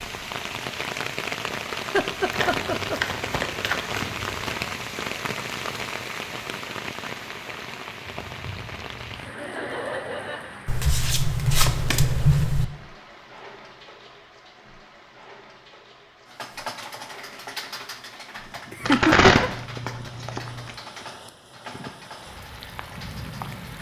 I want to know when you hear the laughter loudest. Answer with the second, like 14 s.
19 s.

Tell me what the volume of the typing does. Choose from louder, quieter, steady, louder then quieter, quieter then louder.
quieter.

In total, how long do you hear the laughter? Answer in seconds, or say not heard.
3 s.